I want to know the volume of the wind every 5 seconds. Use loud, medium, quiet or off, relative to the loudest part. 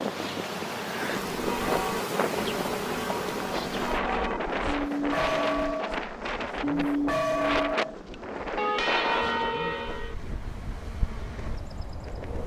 loud, loud, medium.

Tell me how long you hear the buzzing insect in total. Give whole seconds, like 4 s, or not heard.
12 s.